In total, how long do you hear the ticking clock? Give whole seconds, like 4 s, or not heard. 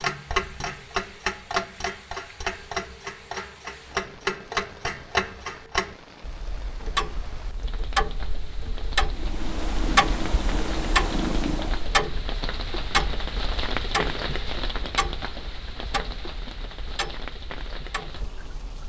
19 s.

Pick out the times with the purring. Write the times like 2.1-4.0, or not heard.
9.1-11.9.